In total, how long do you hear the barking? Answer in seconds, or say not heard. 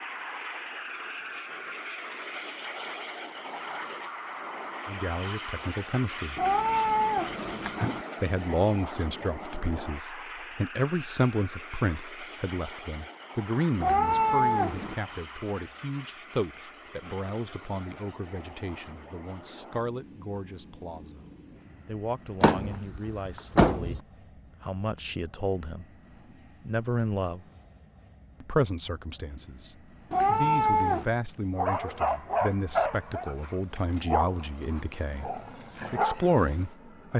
5 s.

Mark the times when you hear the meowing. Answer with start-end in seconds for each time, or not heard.
6.3-8.1, 13.8-14.9, 30.1-31.1.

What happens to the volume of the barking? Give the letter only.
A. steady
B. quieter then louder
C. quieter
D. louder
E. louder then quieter
B.